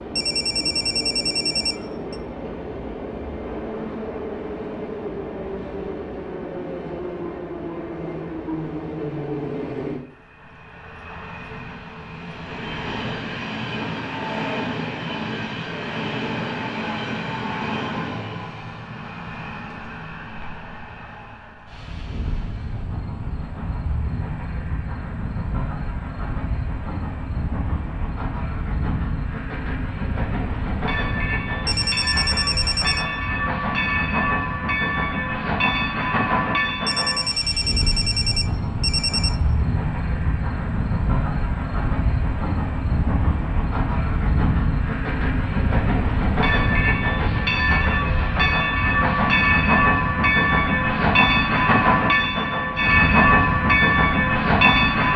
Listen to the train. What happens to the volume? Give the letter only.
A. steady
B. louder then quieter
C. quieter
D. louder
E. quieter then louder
D.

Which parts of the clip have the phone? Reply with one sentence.
The phone can be heard from 0.1 to 2.1 s, from 31.6 to 33.0 s and from 36.9 to 39.4 s.